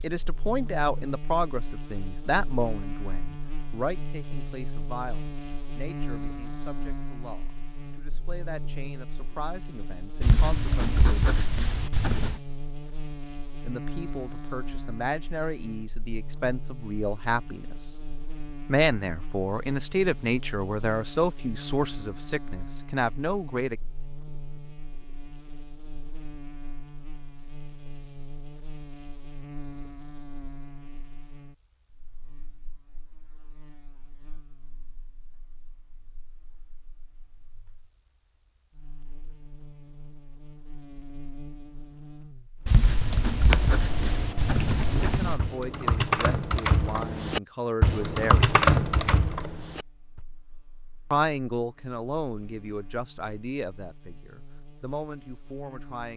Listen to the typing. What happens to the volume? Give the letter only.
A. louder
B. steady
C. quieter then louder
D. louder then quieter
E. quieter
A.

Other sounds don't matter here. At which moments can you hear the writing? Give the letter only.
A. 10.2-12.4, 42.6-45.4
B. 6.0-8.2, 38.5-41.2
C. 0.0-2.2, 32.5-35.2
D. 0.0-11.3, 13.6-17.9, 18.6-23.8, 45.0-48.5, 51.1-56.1
A.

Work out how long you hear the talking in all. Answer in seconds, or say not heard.
29 s.